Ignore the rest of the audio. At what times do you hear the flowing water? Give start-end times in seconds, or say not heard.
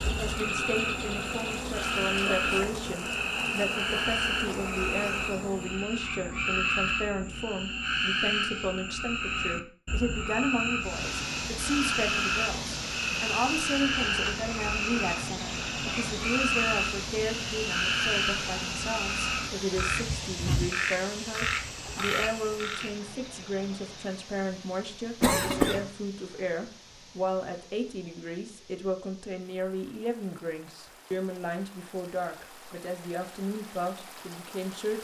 10.8-34.9.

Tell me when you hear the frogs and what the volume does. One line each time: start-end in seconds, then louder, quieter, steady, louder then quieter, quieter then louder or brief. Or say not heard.
0.0-22.9 steady.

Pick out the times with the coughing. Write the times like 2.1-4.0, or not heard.
25.2-25.9.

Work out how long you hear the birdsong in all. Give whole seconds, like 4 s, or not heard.
not heard.